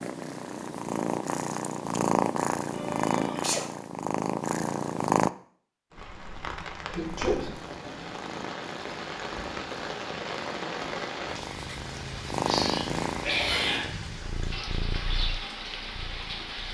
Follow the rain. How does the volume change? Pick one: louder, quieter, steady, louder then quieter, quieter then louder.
steady.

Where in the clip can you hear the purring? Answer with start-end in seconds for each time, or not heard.
0.0-5.3, 7.0-16.6.